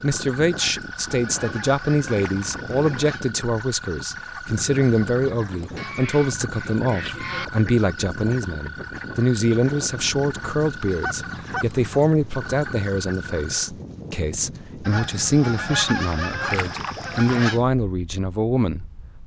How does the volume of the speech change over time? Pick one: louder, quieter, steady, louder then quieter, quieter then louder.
steady.